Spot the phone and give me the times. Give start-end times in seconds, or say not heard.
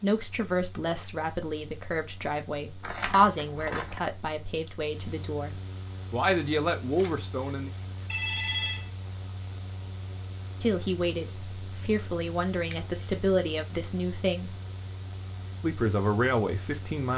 8.1-8.9.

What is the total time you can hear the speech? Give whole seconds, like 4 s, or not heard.
13 s.